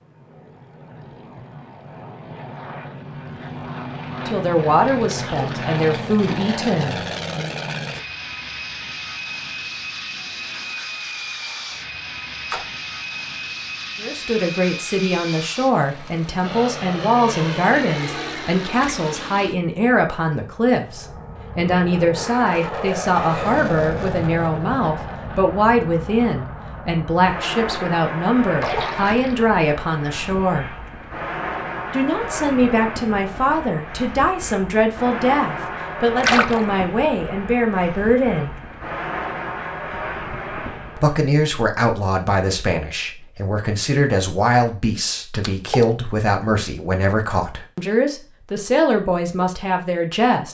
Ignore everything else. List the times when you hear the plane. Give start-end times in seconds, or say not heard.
0.0-41.2.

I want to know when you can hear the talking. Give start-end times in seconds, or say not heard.
4.2-7.5, 14.0-30.7, 31.9-38.5, 41.0-50.4.